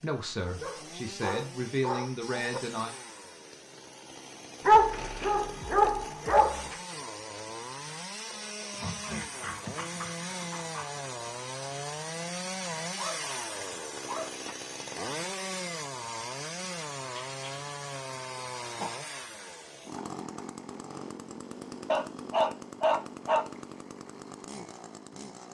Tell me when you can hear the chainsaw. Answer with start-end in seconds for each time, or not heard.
0.0-25.4.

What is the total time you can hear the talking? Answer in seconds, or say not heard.
3 s.